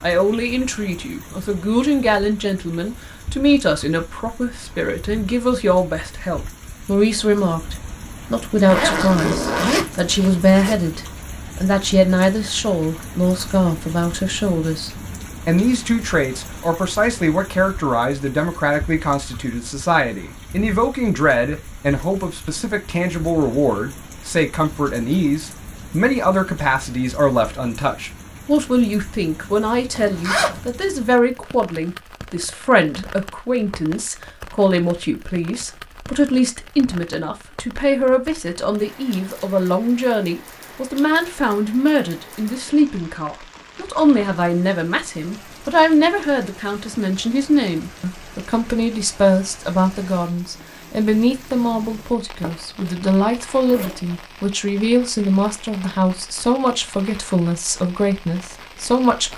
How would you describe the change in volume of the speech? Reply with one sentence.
The volume of the speech stays about the same.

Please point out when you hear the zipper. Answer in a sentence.
You can hear the zipper from 8.6 to 10.8 s, from 29.9 to 30.6 s, from 52.4 to 53.0 s and from 53.6 to 54.1 s.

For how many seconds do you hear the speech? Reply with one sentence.
The speech can be heard for 59 seconds in total.